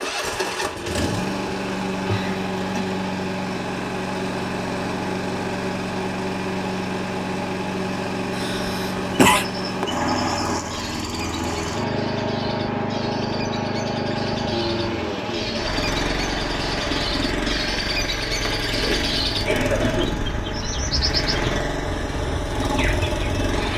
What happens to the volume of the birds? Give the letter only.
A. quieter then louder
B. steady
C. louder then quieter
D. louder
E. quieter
D.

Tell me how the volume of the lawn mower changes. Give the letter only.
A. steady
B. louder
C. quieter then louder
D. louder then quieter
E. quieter
A.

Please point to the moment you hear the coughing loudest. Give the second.
9 s.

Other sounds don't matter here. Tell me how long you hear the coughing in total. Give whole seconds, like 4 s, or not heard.
3 s.